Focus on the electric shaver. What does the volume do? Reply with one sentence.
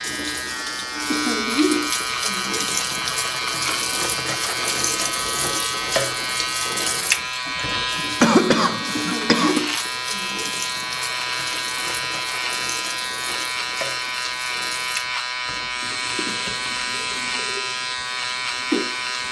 The loudness of the electric shaver stays about the same.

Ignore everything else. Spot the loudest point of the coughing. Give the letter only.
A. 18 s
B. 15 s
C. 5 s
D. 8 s
D.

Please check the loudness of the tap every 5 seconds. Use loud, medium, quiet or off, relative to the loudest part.
loud, loud, medium, medium.